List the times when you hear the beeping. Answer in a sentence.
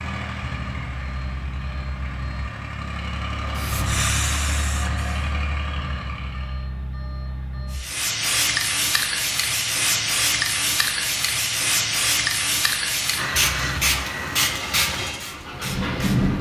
You can hear the beeping from 0.4 to 2.4 s, from 5.8 to 7.8 s and from 13.3 to 13.8 s.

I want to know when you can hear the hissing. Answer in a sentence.
You can hear the hissing from 3.5 to 5.3 s and from 7.7 to 16.3 s.